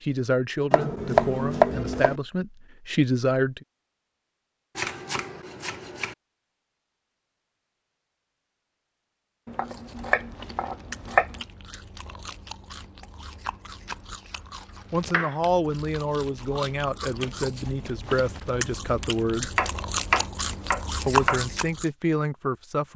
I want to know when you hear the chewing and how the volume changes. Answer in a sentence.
The chewing can be heard from 9.6 to 21.9 s, getting louder.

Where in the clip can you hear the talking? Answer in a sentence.
The talking can be heard from 0.1 to 3.6 s, from 14.9 to 19.5 s and from 21.1 to 22.9 s.